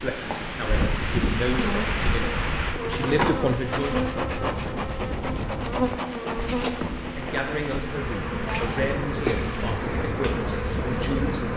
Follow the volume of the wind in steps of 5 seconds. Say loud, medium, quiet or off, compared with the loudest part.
loud, medium, loud.